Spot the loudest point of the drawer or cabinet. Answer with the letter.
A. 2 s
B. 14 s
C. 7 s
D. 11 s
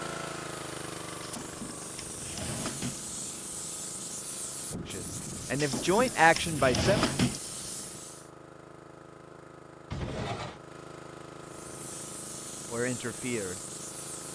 C.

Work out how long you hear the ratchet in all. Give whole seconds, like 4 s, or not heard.
not heard.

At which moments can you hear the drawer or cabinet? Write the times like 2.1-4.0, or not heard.
1.2-3.0, 5.5-7.4, 9.9-10.6.